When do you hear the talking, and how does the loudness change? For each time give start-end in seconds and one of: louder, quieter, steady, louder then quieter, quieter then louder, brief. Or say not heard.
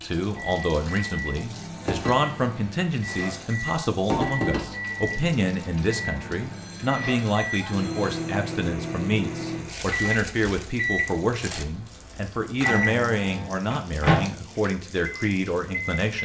0.0-16.2 steady.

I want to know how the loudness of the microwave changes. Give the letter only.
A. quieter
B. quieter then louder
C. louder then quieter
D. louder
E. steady
D.